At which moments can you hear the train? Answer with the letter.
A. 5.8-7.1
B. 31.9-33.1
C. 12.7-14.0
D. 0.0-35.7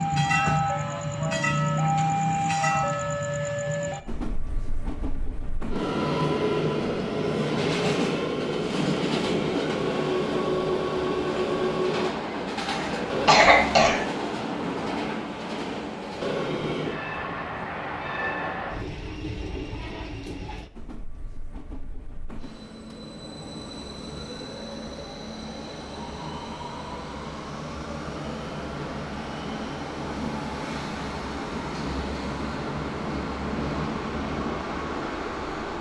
D.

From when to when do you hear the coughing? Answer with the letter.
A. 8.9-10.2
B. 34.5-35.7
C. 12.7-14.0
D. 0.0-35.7
C.